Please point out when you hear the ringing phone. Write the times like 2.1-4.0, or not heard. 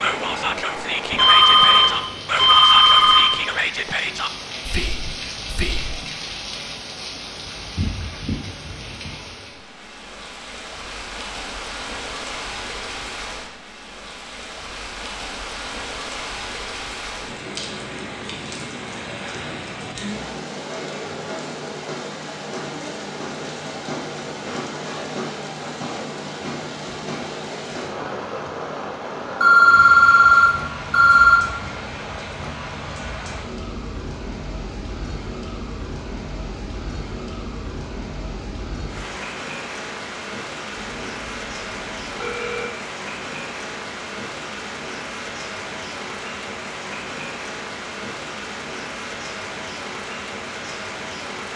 1.1-3.4, 29.4-31.4, 40.8-42.7.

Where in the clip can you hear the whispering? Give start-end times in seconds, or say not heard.
0.0-6.1.